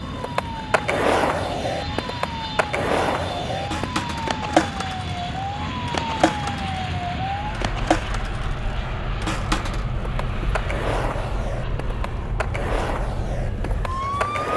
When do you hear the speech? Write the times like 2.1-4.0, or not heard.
not heard.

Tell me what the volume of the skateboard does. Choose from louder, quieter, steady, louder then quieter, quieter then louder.
quieter.